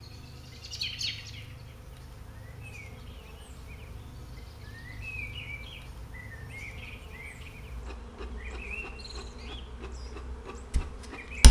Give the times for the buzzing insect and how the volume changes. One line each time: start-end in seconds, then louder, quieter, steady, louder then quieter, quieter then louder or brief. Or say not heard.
0.0-11.4 steady.